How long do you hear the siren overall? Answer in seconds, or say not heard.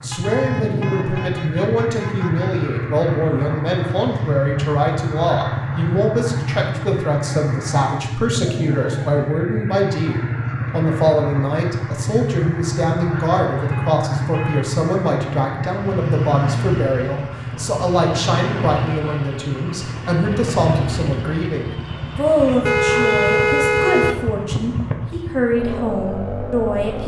not heard.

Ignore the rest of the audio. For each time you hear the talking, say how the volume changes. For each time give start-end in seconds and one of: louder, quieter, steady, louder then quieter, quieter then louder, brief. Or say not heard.
0.0-27.0 steady.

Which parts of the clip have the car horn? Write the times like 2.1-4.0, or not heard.
0.1-2.6, 13.7-14.8, 22.6-24.3.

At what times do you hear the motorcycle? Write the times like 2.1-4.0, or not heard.
0.0-27.0.